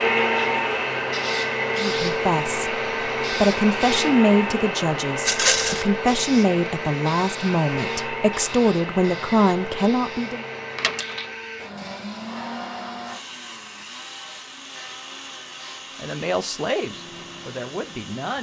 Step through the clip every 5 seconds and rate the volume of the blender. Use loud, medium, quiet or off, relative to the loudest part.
loud, medium, medium, quiet.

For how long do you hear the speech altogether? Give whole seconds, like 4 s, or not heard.
11 s.